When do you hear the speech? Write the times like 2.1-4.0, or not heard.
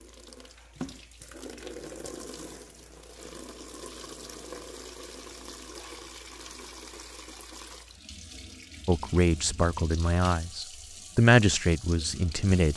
8.8-12.7.